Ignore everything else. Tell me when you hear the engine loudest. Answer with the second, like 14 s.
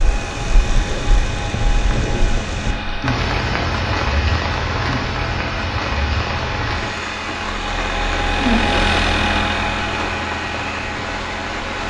9 s.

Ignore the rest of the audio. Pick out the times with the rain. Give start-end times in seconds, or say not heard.
0.0-11.8.